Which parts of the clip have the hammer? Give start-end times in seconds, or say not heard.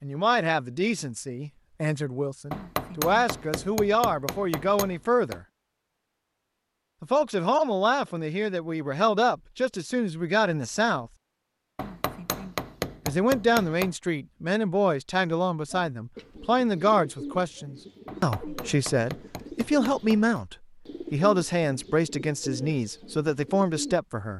2.5-5.4, 11.8-13.9, 18.1-20.4.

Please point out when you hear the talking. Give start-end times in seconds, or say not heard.
0.0-5.5, 7.0-11.1, 13.1-24.3.